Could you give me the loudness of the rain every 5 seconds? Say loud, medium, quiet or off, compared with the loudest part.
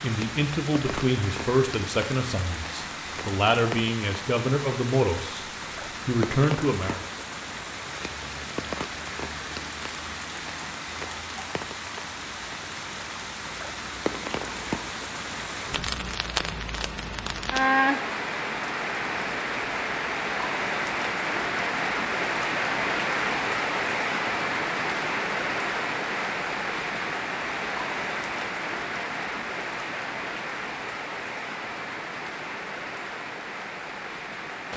medium, medium, medium, loud, loud, loud, medium.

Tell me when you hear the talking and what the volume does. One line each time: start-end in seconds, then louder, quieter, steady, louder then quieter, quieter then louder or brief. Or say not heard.
0.0-5.5 quieter then louder
6.0-7.0 brief.